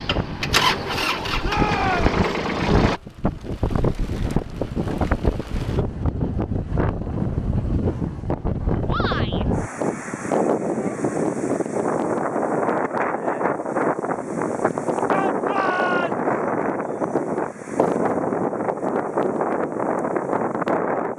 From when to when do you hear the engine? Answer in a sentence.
The engine can be heard from 0.0 to 3.0 s.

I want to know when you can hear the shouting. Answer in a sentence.
You can hear the shouting from 1.4 to 2.1 s, from 8.8 to 9.4 s and from 15.1 to 16.3 s.